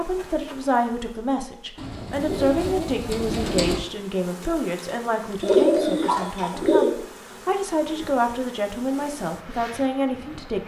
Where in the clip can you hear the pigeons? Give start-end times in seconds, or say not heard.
1.8-3.8, 5.4-7.0.